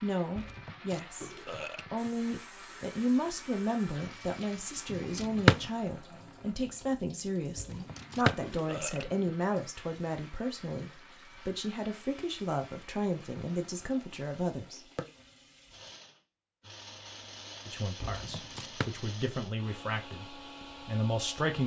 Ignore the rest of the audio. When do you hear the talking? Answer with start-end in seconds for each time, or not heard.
0.0-1.3, 1.9-15.1, 17.6-21.6.